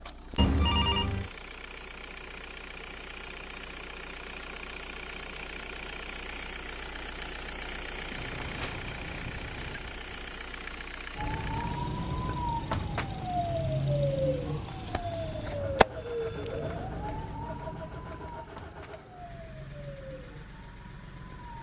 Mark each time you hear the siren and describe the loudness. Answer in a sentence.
You can hear the siren from 11.2 to 21.5 s, getting quieter.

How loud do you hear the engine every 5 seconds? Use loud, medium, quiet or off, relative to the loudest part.
loud, loud, loud, medium, medium.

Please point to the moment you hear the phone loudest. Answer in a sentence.
The volume of the phone peaks at 1 second.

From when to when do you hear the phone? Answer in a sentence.
The phone can be heard from 0.3 to 1.3 s, from 8.1 to 9.8 s and from 14.7 to 16.9 s.